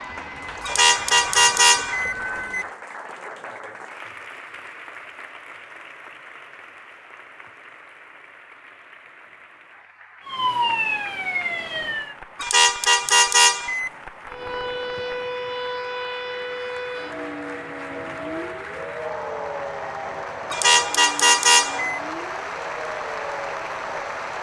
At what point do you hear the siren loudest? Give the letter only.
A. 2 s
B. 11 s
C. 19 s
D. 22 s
B.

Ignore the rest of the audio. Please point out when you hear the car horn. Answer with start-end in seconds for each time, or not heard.
0.6-2.6, 12.4-13.9, 20.5-22.0.